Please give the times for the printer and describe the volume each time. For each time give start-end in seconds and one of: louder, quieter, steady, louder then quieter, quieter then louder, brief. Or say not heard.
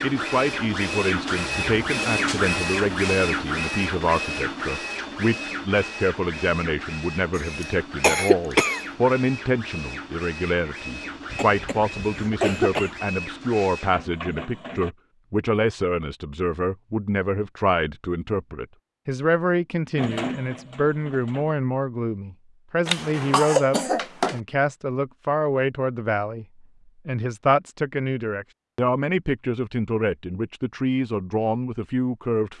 0.0-14.9 quieter
19.9-21.6 brief.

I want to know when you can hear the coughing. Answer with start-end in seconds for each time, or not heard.
7.6-8.8, 11.3-13.0, 22.9-24.4.